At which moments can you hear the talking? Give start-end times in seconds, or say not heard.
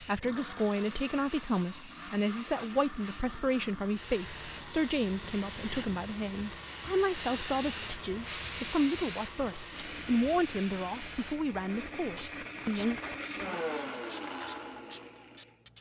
0.0-13.0.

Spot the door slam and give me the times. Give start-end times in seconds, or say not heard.
not heard.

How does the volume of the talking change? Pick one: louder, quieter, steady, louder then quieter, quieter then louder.
steady.